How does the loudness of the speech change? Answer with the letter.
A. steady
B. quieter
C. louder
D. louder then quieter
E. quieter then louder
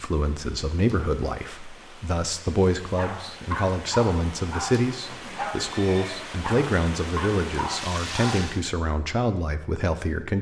A.